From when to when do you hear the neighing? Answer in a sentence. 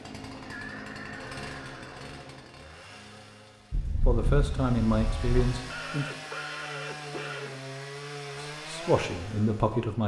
You can hear the neighing from 0.5 to 2.1 s and from 5.7 to 7.6 s.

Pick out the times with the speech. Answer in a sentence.
The speech can be heard from 4.0 to 6.2 s and from 8.5 to 10.0 s.